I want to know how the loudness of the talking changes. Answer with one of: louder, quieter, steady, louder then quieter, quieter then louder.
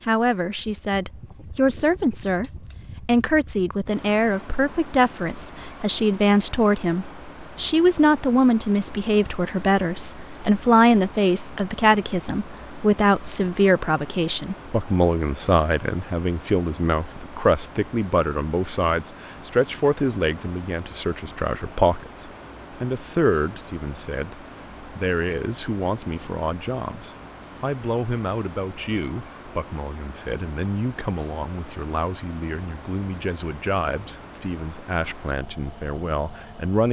quieter.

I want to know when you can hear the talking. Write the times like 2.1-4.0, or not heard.
0.0-36.8.